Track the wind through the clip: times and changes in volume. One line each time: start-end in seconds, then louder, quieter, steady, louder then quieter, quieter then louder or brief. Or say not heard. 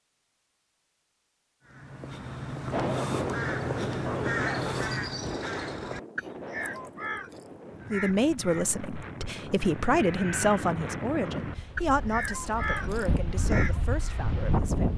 2.7-14.9 quieter then louder.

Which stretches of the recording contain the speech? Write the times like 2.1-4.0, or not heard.
7.9-14.9.